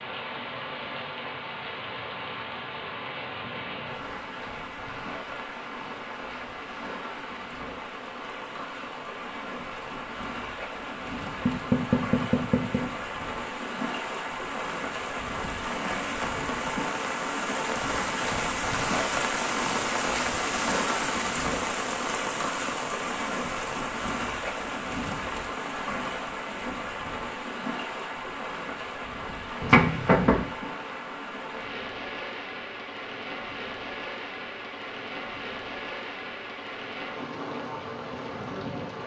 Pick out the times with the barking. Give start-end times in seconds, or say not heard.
not heard.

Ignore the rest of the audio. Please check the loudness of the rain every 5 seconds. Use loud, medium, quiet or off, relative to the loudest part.
medium, medium, medium, loud, loud, medium, medium, medium.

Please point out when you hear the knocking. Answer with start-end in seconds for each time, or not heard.
11.4-12.8, 29.6-30.4.